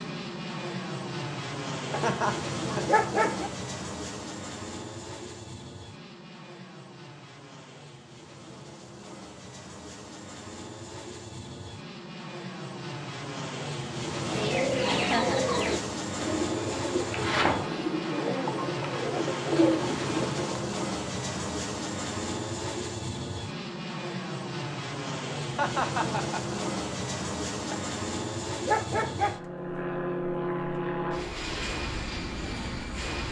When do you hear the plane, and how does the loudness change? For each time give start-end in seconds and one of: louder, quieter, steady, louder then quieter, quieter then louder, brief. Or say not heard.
0.0-33.2 quieter then louder.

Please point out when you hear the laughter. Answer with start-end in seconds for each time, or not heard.
1.9-2.9, 14.8-15.4, 25.6-26.6.